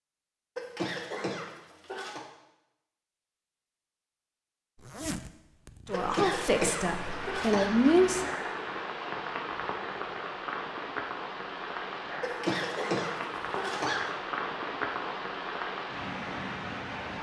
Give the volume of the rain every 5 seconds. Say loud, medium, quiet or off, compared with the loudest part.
off, loud, loud, loud.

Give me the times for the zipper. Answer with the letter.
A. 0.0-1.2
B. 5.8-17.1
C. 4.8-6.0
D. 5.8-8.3
C.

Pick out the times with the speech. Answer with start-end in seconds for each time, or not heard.
5.8-8.3.